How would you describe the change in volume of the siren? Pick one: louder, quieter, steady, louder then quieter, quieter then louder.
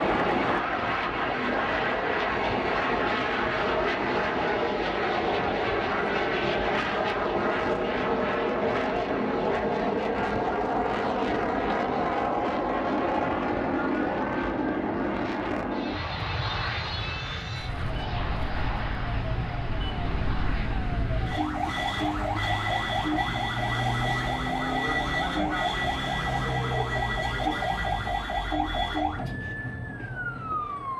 louder.